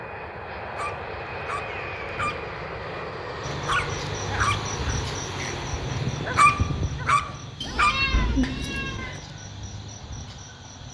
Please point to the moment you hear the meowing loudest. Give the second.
8 s.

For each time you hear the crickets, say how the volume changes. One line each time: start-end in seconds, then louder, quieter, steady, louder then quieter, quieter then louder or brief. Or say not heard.
3.4-10.8 quieter.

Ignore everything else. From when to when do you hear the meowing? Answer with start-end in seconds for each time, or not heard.
0.8-2.5, 7.6-9.2.